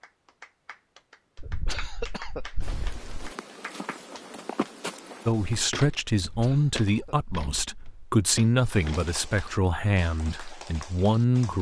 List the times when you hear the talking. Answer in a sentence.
You can hear the talking from 5.2 to 11.5 s.